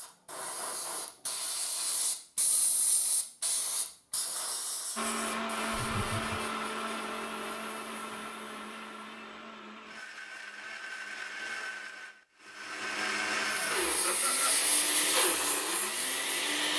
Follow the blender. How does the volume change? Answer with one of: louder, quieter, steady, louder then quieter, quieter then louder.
quieter then louder.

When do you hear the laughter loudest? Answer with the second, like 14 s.
14 s.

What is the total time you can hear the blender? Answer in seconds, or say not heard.
12 s.